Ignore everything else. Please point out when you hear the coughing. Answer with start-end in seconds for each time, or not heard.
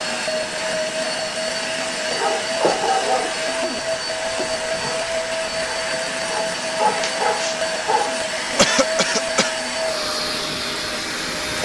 3.1-3.9, 8.6-9.5.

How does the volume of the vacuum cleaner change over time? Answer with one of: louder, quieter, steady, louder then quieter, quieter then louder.
steady.